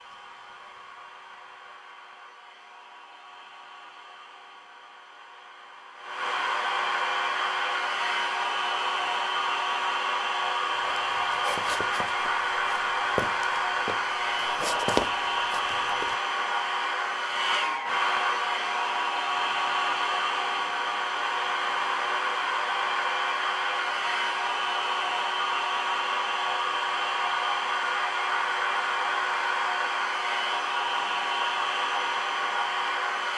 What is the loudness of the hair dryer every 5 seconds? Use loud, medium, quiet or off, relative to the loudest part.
quiet, loud, loud, loud, loud, loud, loud.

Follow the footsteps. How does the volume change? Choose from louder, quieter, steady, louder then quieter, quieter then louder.
quieter then louder.